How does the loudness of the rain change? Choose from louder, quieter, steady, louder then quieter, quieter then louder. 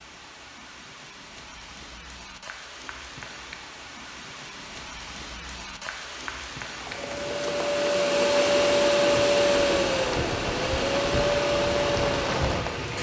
louder.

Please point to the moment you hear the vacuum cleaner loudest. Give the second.
9 s.